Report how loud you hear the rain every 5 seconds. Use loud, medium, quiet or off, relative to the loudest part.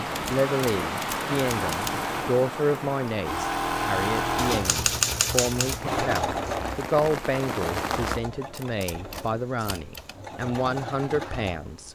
loud, loud, off.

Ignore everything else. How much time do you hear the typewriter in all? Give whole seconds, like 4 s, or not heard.
6 s.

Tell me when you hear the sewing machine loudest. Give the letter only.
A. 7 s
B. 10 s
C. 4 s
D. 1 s
C.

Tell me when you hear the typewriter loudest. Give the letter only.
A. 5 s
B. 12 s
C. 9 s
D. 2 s
A.